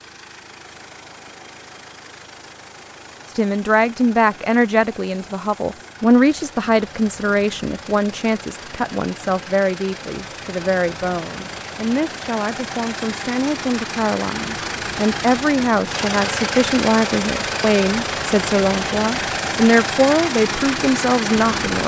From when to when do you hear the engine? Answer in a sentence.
You can hear the engine from 0.0 to 21.8 s.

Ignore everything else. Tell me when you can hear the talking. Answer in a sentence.
The talking can be heard from 3.4 to 21.8 s.